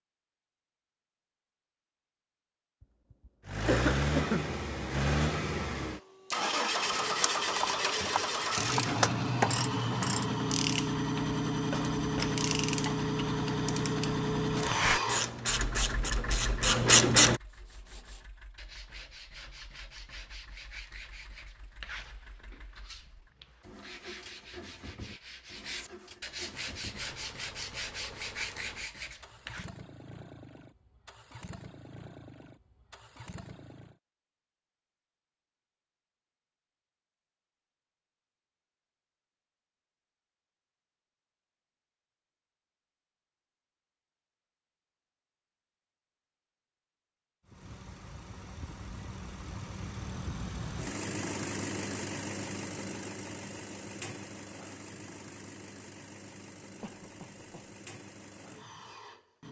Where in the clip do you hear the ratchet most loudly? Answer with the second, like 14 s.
17 s.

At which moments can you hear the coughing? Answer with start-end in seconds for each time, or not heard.
3.6-4.5, 56.8-57.7.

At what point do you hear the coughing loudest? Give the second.
4 s.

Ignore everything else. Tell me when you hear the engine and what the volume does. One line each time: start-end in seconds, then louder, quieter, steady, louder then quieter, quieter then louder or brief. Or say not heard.
3.5-34.0 quieter
47.5-59.4 louder then quieter.